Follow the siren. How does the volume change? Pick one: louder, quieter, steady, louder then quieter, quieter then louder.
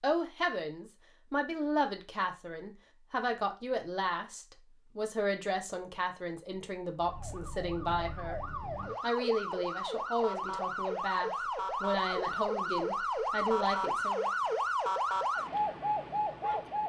louder.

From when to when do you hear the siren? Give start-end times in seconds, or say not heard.
7.0-16.8.